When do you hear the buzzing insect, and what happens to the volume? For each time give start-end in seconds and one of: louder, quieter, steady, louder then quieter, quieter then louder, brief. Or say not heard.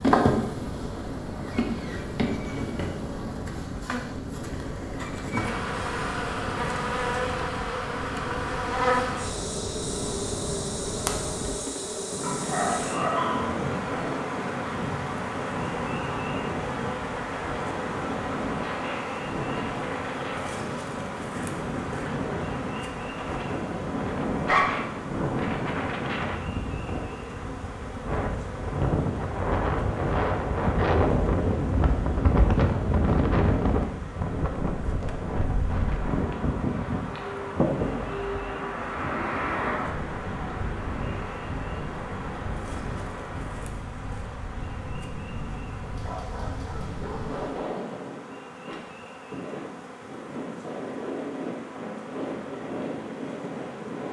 0.0-54.0 quieter.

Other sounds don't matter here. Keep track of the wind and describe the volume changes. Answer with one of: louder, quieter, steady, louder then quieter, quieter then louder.
louder then quieter.